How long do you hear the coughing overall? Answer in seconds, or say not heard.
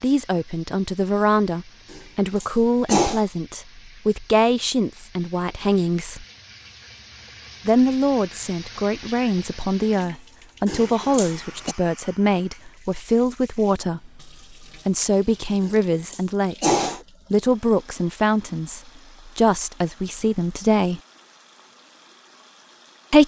4 s.